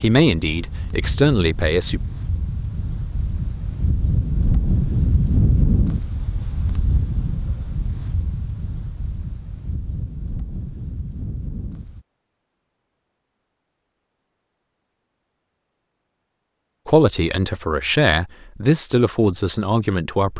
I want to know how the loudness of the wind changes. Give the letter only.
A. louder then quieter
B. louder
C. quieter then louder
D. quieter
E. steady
A.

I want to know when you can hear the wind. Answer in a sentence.
You can hear the wind from 0.1 to 12.1 s.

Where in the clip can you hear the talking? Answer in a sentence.
You can hear the talking from 0.0 to 2.0 s and from 16.9 to 20.3 s.